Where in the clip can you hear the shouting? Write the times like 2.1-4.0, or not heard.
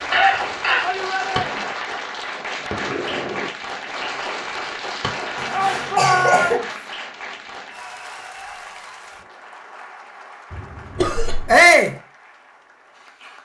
0.8-1.6, 5.5-6.8, 11.4-11.9.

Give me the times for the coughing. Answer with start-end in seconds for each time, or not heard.
0.1-0.8, 5.3-6.6, 10.5-11.6.